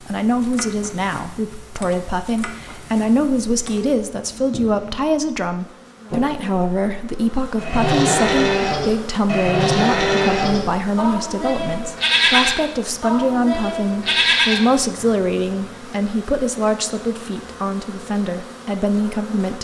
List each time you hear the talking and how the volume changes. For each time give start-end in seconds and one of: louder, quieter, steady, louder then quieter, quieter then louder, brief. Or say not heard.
0.0-19.6 steady.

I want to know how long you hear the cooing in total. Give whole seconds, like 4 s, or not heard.
not heard.